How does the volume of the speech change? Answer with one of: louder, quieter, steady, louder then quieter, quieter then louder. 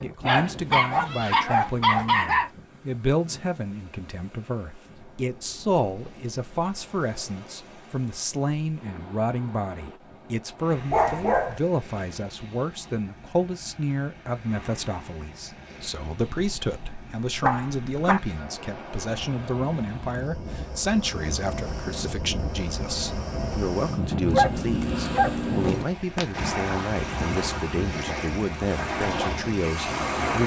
steady.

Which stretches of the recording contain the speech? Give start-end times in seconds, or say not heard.
0.0-30.4.